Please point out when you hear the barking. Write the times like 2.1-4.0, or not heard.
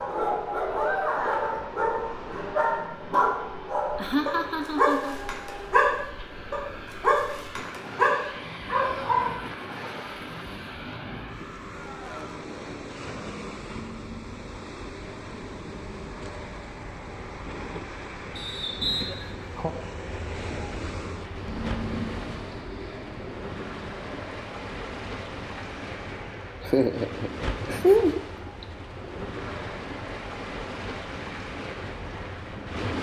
0.0-9.3.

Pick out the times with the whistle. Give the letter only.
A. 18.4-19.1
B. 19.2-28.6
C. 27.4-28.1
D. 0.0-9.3
A.